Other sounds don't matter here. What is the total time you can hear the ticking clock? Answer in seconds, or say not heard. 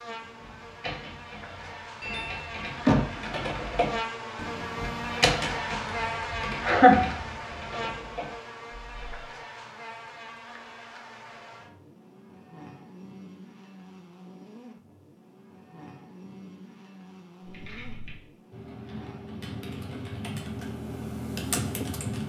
not heard.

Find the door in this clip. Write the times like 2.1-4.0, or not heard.
2.0-3.4.